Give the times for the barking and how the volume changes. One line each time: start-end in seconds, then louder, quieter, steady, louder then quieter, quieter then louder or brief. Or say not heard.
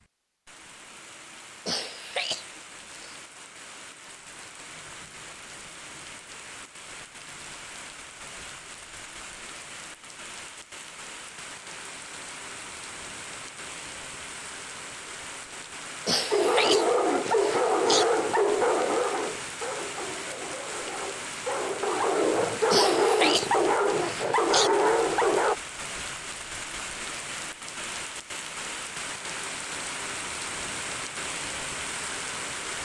16.3-25.6 quieter then louder.